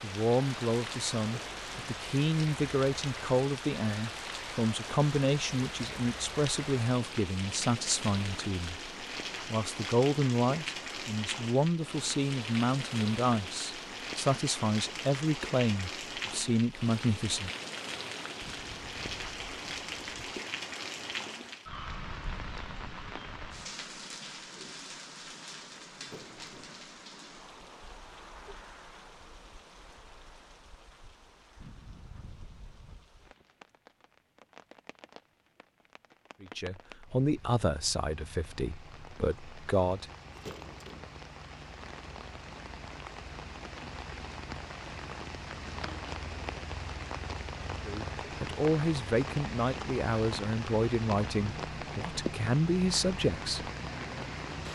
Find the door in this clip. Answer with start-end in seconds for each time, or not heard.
1.2-1.8, 26.0-26.8, 40.3-41.1.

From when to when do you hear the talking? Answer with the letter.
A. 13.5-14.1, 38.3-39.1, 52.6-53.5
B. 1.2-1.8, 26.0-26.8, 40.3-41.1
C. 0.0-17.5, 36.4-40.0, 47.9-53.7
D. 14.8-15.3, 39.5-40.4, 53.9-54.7
C.